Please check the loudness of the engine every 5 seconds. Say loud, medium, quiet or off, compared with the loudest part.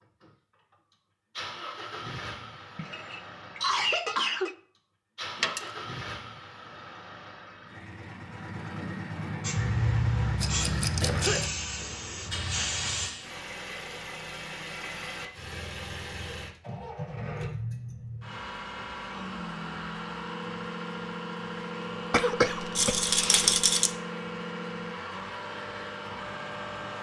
medium, loud, loud, loud, loud, loud.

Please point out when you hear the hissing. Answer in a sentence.
You can hear the hissing from 9.4 to 13.1 s.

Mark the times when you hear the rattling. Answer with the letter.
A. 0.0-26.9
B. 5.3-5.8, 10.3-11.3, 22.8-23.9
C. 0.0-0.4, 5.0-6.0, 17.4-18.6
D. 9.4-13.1
B.